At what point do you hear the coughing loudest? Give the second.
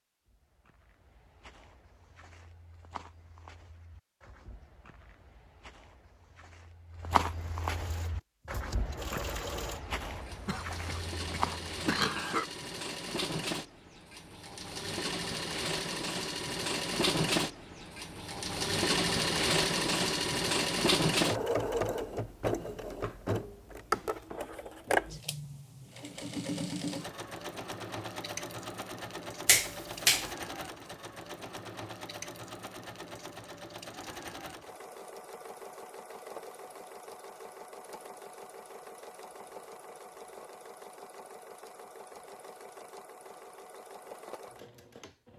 12 s.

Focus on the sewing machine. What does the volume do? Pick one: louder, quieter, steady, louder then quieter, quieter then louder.
louder then quieter.